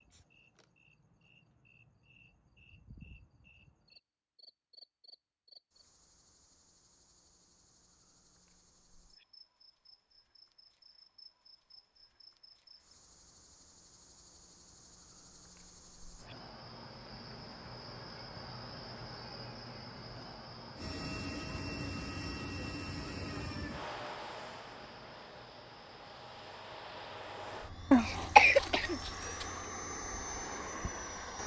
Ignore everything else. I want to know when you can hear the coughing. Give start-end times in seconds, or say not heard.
27.9-29.4.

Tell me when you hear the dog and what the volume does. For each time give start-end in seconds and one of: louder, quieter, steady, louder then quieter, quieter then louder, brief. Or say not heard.
not heard.